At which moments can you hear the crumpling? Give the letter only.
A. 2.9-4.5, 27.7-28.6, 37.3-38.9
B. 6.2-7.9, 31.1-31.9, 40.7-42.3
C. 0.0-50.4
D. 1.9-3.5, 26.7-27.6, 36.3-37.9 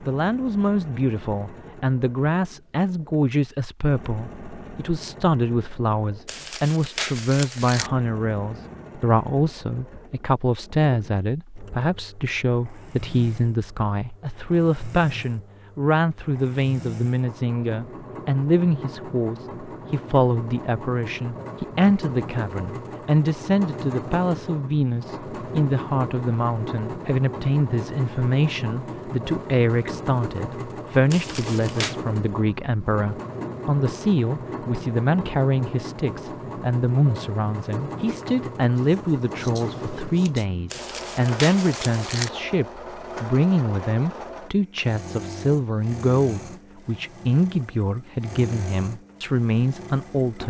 B.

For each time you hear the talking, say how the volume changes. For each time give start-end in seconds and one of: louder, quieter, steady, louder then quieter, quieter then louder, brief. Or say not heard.
0.0-50.4 steady.